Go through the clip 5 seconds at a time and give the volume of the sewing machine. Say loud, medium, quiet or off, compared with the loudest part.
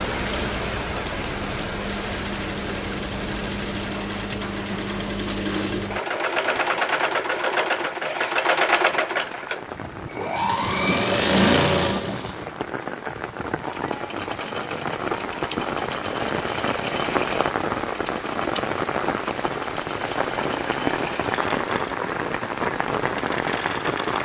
medium, loud, loud, medium, medium.